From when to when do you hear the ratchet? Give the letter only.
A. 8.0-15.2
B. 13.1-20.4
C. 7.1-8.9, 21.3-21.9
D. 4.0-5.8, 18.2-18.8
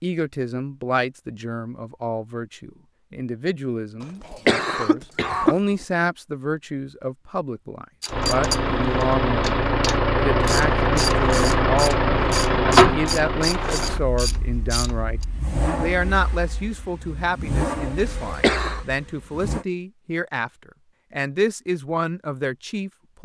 A.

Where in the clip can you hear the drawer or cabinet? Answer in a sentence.
You can't hear the drawer or cabinet here.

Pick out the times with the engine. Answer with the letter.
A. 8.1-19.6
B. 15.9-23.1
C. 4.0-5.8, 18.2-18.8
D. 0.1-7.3
A.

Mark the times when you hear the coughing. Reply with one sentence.
You can hear the coughing from 4.0 to 5.8 s and from 18.2 to 18.8 s.